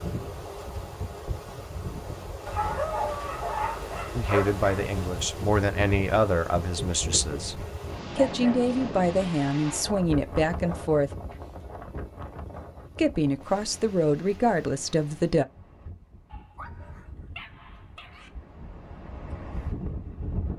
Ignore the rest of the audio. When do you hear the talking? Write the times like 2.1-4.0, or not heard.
4.2-11.1, 12.9-15.4.